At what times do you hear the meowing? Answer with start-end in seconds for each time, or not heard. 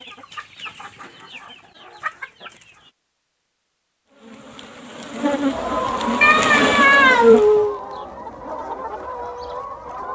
6.2-7.8.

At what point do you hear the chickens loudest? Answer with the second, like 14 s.
6 s.